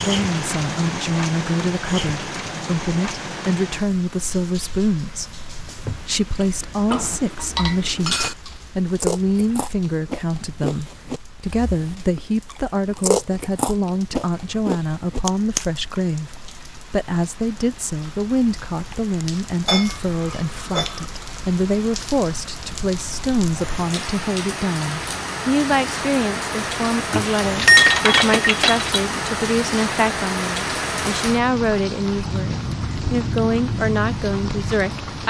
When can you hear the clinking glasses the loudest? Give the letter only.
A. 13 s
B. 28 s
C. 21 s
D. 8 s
B.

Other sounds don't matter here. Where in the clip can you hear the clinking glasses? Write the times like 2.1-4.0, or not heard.
6.9-8.3, 19.6-21.1, 27.1-28.9.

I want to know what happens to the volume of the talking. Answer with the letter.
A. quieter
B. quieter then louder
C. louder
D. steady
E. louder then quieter
D.